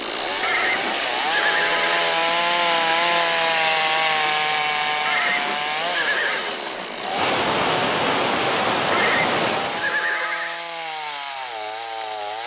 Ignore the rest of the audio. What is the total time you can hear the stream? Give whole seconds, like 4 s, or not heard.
10 s.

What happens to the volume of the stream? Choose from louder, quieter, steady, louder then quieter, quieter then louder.
louder.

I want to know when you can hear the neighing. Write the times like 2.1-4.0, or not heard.
0.4-1.9, 5.0-6.5, 8.9-10.7.